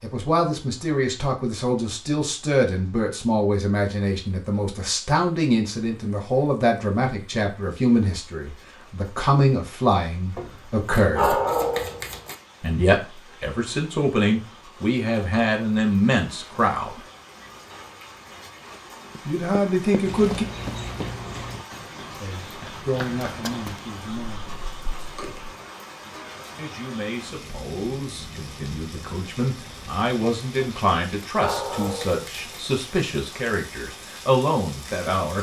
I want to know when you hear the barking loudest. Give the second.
11 s.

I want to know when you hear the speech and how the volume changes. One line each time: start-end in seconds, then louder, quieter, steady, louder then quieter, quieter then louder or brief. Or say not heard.
0.0-11.4 steady
12.6-17.0 louder
19.2-20.4 brief
22.2-24.4 brief
26.6-35.3 louder.